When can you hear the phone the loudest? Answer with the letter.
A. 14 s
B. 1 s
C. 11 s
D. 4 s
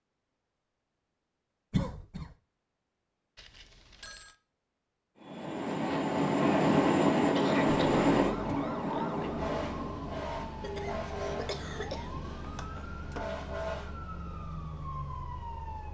C.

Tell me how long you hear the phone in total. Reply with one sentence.
You can hear the phone for 2 seconds altogether.